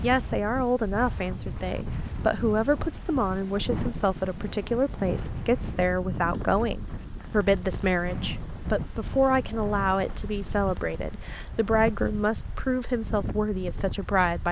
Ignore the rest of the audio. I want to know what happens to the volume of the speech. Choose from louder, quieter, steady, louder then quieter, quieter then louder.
steady.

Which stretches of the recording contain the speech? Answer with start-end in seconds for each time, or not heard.
0.0-14.4.